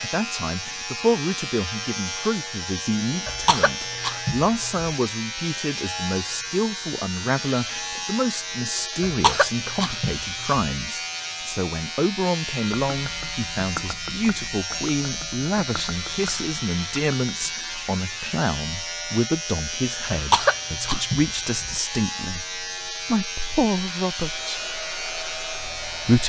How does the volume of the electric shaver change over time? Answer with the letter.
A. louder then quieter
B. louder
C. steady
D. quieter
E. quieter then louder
C.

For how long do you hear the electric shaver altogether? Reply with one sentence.
You can hear the electric shaver for 26 seconds altogether.